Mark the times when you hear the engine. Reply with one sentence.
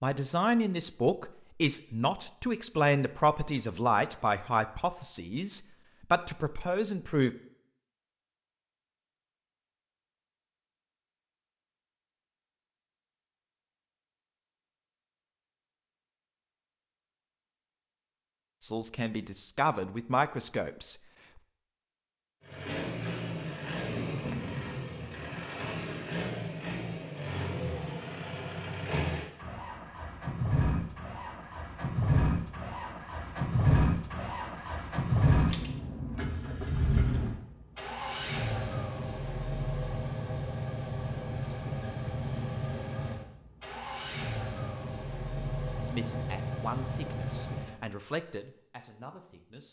The engine can be heard from 22.4 to 47.8 s.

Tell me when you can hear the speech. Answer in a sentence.
You can hear the speech from 0.0 to 7.3 s, from 18.6 to 20.9 s and from 45.8 to 49.6 s.